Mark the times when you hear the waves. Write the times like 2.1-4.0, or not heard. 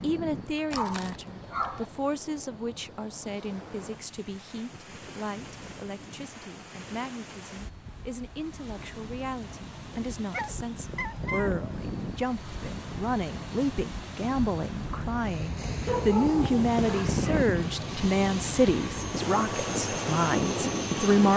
0.0-21.3.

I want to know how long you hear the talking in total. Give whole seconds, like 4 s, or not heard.
21 s.